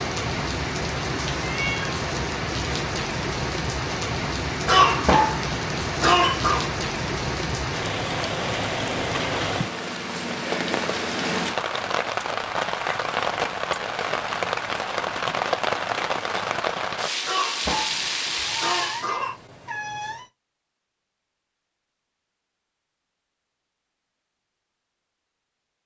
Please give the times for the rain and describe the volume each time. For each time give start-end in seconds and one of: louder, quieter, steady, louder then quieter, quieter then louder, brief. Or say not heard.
0.0-19.1 steady.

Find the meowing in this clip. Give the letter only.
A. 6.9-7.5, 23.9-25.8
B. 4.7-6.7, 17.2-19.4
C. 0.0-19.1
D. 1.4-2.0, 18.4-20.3
D.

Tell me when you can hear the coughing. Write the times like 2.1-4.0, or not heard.
4.7-6.7, 17.2-19.4.